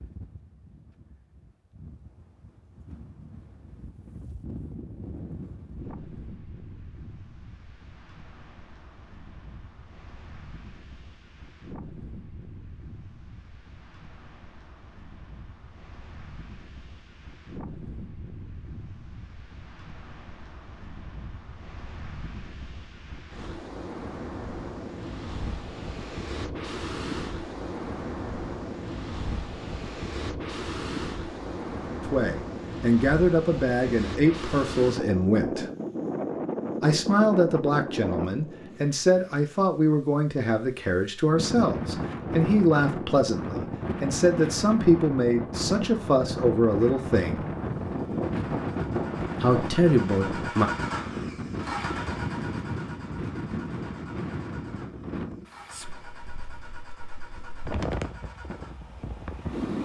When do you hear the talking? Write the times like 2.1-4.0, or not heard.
32.0-35.7, 36.8-47.4, 49.4-50.7.